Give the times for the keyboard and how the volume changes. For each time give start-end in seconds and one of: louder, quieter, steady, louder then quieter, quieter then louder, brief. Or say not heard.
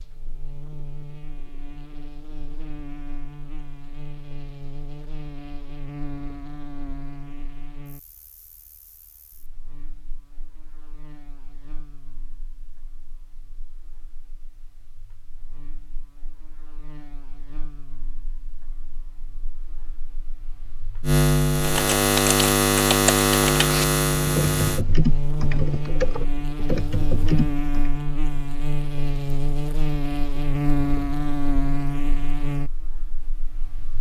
21.6-27.9 steady.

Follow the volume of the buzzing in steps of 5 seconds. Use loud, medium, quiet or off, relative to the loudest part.
quiet, quiet, quiet, quiet, loud, medium, medium.